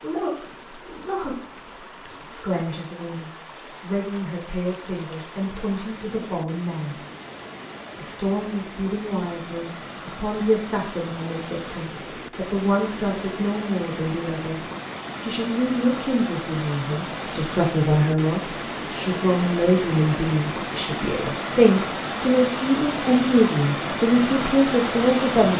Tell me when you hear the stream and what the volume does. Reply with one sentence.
You can hear the stream from 0.0 to 25.5 s, getting louder.